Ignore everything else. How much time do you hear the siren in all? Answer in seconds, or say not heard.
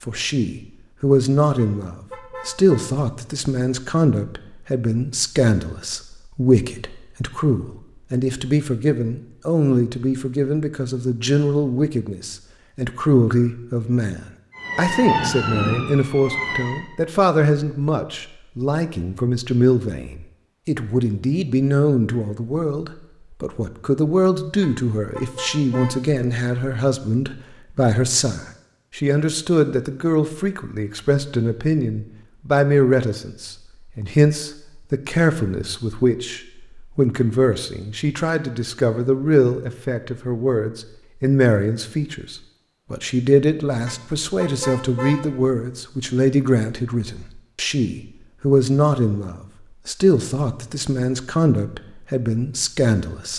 2 s.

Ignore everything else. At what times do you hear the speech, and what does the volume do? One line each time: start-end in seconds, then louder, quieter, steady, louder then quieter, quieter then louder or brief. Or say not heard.
0.0-53.3 steady.